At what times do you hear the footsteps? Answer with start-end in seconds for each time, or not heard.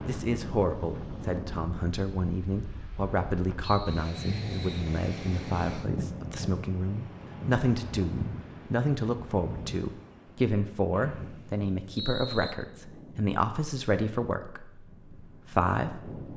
not heard.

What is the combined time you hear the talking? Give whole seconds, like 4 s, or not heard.
16 s.